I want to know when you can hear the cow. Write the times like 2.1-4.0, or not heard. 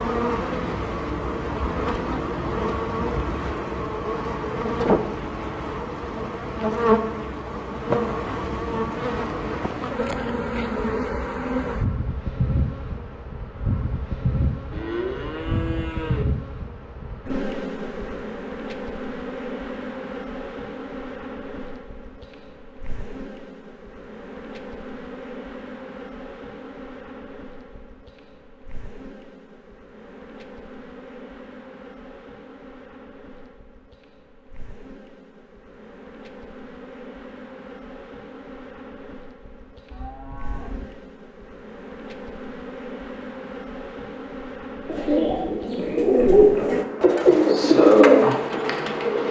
14.7-16.2, 39.9-41.0.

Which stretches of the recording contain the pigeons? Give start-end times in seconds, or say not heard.
44.9-49.2.